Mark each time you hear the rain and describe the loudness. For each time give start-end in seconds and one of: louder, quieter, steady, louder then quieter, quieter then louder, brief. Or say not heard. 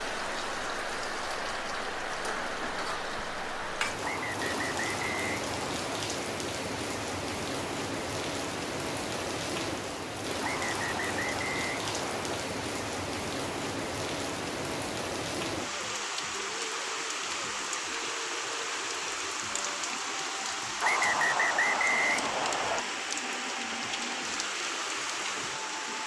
0.0-26.0 steady.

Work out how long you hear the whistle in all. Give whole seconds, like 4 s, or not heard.
6 s.